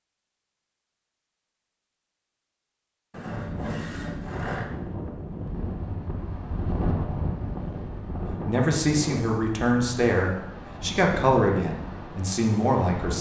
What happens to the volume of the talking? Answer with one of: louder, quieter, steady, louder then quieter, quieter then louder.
steady.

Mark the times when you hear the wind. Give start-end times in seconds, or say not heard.
3.3-13.1.